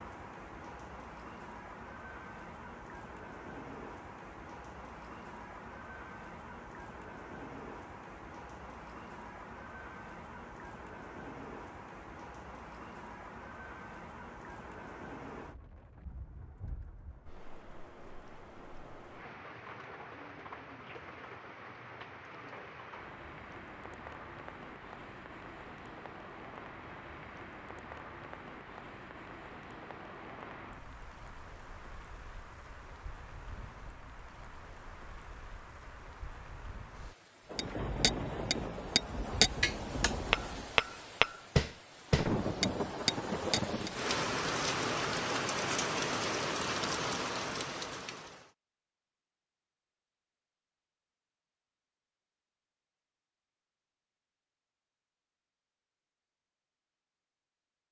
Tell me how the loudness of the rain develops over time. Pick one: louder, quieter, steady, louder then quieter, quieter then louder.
louder.